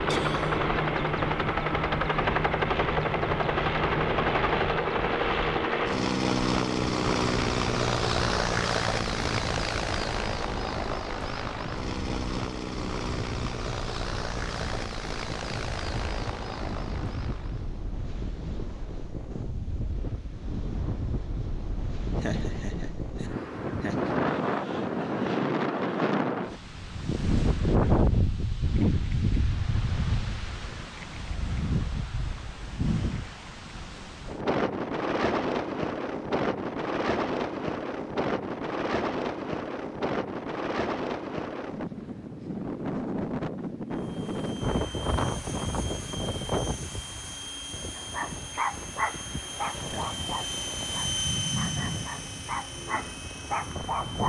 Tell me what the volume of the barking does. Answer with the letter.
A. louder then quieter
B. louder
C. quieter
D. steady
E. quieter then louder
E.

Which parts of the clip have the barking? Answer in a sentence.
The barking can be heard from 48.0 to 54.2 s.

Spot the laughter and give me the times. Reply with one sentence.
You can hear the laughter from 0.1 to 0.7 s, from 22.1 to 24.0 s and from 49.8 to 50.3 s.